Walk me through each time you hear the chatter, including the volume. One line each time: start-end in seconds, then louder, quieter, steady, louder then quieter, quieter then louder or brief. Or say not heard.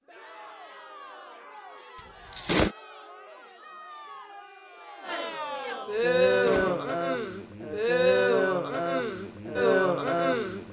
0.1-10.6 louder.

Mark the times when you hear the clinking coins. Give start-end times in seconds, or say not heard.
2.3-2.8, 6.2-6.8.